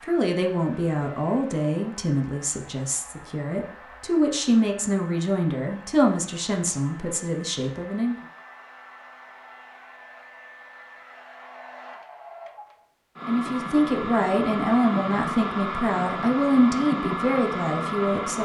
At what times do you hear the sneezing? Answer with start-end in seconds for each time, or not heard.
not heard.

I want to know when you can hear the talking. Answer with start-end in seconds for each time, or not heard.
0.0-8.2, 13.2-18.4.